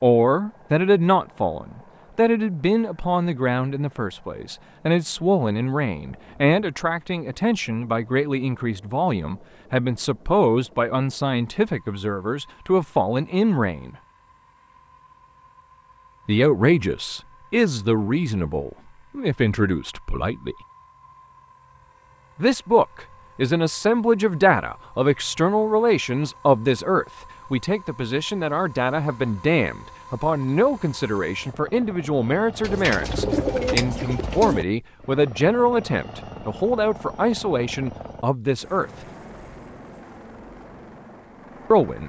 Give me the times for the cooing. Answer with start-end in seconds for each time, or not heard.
32.6-34.6.